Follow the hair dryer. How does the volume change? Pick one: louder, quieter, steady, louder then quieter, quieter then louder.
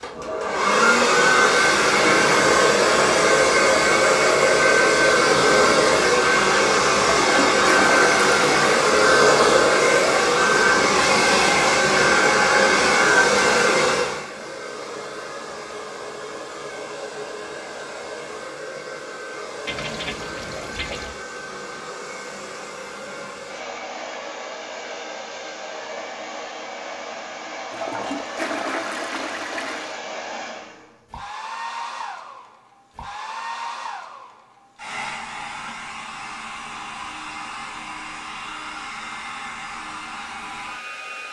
quieter.